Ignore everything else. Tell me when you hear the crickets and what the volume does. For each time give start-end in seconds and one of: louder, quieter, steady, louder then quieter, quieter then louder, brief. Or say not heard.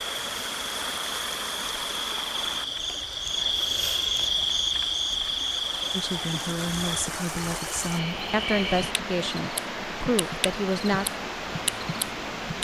0.0-12.5 louder then quieter.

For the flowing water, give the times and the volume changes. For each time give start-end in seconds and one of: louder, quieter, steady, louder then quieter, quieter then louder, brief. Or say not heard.
0.0-12.5 quieter then louder.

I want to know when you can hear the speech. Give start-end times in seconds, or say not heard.
5.9-11.1.